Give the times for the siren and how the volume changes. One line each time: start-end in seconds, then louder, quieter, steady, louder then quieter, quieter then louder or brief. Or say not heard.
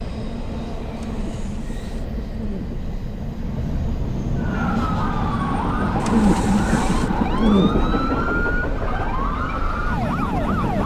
4.3-10.8 steady.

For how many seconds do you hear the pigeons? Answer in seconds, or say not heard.
4 s.